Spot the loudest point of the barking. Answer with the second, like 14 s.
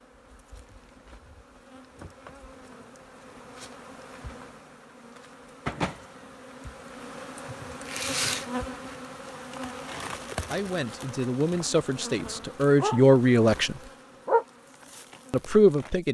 14 s.